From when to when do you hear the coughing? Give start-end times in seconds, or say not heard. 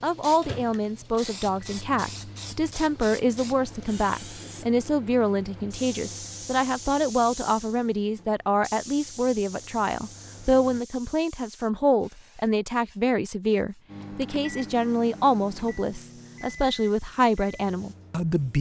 not heard.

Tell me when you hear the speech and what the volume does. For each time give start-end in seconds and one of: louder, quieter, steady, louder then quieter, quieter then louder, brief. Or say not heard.
0.0-18.5 steady.